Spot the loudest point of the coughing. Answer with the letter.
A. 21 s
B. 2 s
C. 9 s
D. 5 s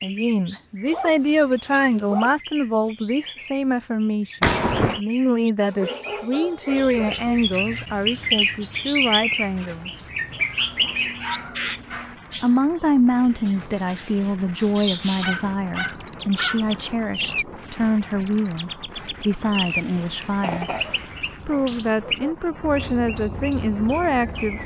D.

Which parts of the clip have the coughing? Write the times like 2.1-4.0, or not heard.
4.4-5.0, 19.6-21.1.